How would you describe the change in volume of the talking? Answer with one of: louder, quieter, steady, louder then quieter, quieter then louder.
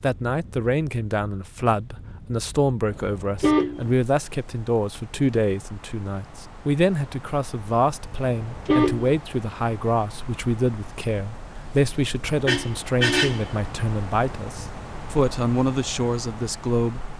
steady.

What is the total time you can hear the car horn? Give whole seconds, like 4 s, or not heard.
3 s.